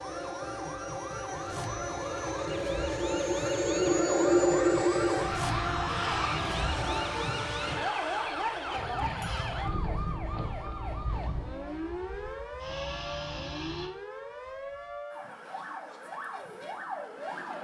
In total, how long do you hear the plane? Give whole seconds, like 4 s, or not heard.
14 s.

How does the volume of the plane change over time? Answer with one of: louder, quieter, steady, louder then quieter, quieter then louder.
louder then quieter.